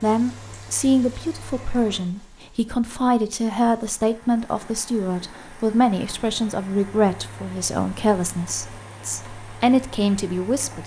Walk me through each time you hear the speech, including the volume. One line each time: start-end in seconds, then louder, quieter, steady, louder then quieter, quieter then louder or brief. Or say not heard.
0.0-10.8 steady.